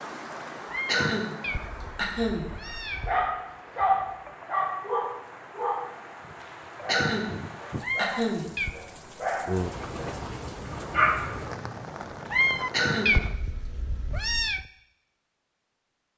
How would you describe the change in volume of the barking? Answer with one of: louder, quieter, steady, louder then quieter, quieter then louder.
quieter then louder.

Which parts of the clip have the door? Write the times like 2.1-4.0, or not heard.
not heard.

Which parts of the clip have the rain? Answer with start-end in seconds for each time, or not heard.
0.0-13.3.